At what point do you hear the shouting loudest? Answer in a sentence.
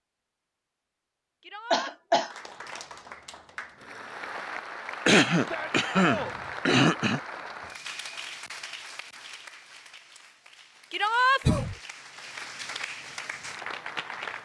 The volume of the shouting peaks at 11 seconds.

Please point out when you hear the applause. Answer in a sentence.
The applause can be heard from 2.1 to 14.4 s.